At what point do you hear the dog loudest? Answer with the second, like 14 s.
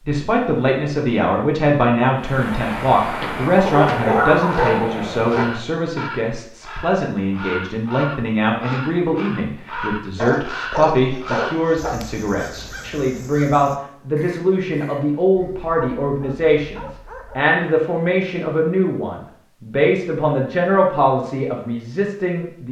4 s.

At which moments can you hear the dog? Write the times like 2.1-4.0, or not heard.
3.6-5.5, 10.2-11.9, 15.3-17.4.